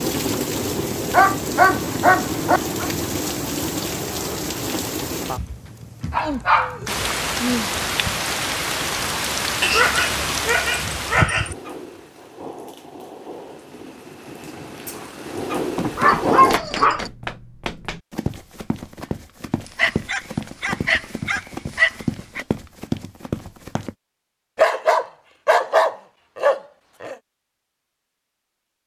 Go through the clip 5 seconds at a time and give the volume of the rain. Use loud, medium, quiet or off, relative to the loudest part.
loud, loud, medium, loud, off, off.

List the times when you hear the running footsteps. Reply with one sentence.
You can hear the running footsteps from 15.6 to 23.9 s.